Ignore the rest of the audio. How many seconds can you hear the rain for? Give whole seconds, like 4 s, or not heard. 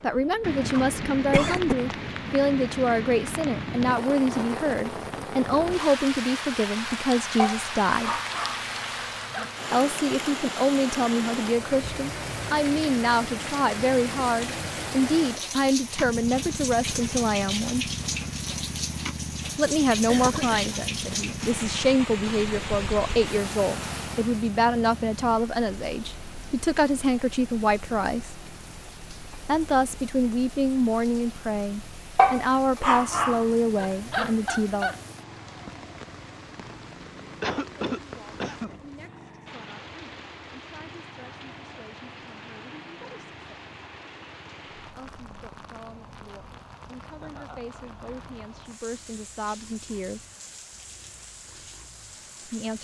53 s.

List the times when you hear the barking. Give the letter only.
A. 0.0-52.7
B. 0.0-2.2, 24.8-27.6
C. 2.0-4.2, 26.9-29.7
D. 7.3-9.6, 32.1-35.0
D.